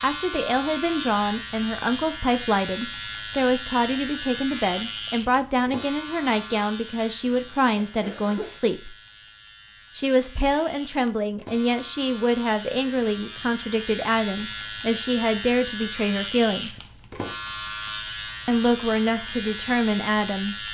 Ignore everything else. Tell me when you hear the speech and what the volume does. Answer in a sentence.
The speech can be heard from 0.0 to 8.9 s, at a steady volume; from 9.9 to 16.8 s, at a steady volume; and briefly from 18.4 to 20.6 s.